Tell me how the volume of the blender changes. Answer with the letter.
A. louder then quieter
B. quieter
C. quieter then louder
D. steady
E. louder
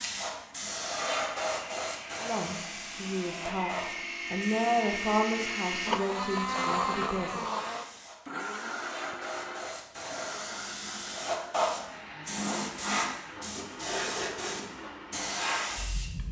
A.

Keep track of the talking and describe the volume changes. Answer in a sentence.
The loudness of the talking goes up, then down.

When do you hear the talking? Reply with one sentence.
The talking can be heard from 2.2 to 7.4 s.